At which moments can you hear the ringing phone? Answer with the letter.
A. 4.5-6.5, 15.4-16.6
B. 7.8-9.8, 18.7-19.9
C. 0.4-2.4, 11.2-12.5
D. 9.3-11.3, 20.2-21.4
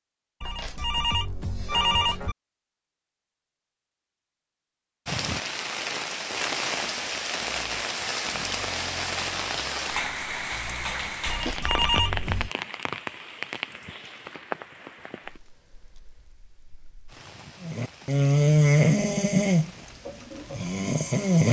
C.